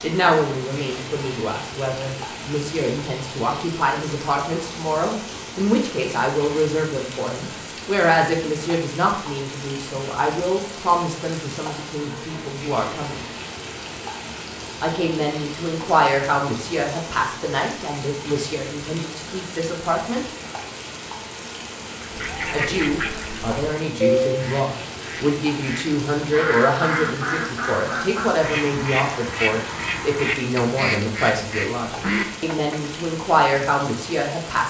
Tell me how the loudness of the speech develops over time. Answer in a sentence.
The volume of the speech stays about the same.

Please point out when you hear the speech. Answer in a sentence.
You can hear the speech from 0.0 to 13.2 s, from 14.8 to 20.2 s and from 22.5 to 34.6 s.